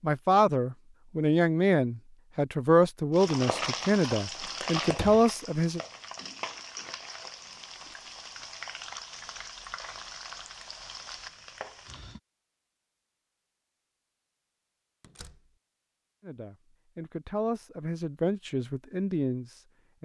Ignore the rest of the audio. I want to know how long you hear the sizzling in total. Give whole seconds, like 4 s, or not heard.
9 s.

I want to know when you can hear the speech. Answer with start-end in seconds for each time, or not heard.
0.0-5.8, 16.2-20.0.